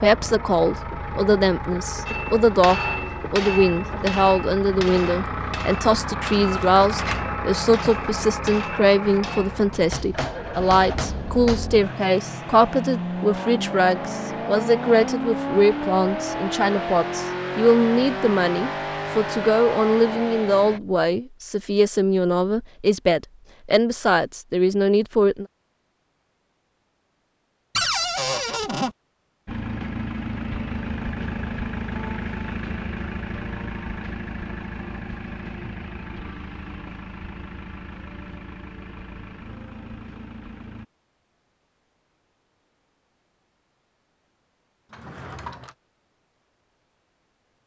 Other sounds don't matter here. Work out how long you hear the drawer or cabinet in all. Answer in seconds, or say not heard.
3 s.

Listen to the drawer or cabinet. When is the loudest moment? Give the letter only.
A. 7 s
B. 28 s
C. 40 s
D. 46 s
B.